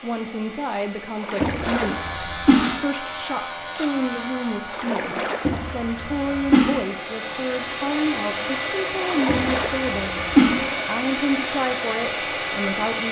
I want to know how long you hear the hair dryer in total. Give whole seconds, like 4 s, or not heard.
13 s.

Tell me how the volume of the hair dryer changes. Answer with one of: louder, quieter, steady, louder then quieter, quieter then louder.
louder.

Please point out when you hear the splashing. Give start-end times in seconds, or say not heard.
1.1-2.3, 4.7-5.7, 9.0-9.9.